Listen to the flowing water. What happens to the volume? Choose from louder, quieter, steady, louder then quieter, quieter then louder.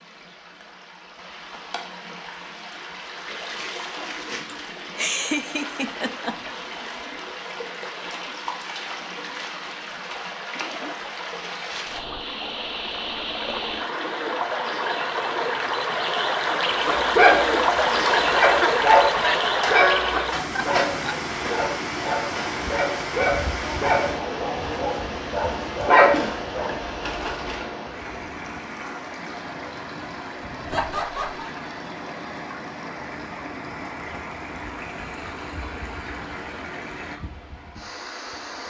louder then quieter.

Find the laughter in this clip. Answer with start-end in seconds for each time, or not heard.
4.5-6.5, 18.6-21.1, 30.7-31.5.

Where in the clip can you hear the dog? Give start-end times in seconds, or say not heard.
16.9-27.6.